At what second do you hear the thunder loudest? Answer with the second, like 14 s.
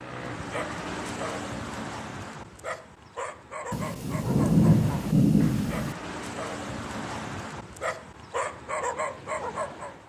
5 s.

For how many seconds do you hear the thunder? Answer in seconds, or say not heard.
2 s.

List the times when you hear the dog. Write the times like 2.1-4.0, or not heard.
0.0-10.0.